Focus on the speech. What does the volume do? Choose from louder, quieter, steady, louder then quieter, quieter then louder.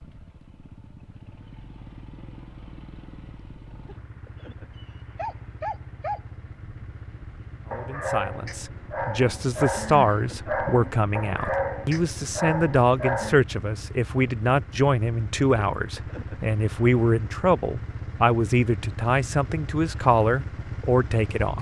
steady.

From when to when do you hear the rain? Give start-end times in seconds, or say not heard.
not heard.